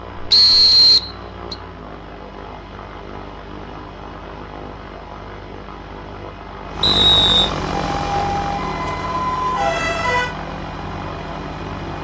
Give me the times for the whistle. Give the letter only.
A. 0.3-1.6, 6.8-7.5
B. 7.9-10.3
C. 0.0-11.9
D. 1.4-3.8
A.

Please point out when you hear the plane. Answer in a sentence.
You can hear the plane from 0.0 to 11.9 s.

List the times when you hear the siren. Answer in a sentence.
You can hear the siren from 7.9 to 10.3 s.